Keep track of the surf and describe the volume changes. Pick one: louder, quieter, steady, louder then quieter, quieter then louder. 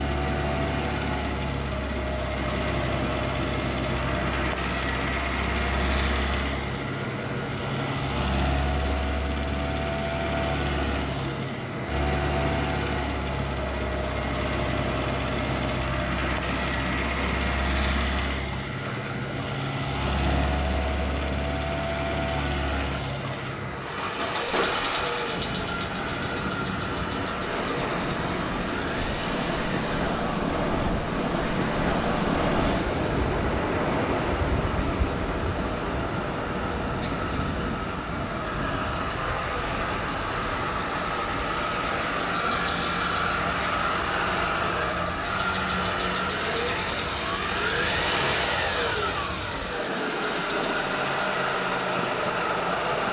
louder then quieter.